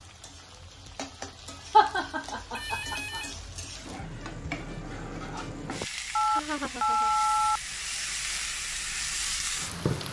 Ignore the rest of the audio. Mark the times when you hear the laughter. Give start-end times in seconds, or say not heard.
1.7-3.2, 5.7-7.1.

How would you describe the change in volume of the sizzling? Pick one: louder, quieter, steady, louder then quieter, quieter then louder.
louder.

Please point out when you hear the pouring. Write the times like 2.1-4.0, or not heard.
not heard.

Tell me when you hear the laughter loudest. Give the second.
2 s.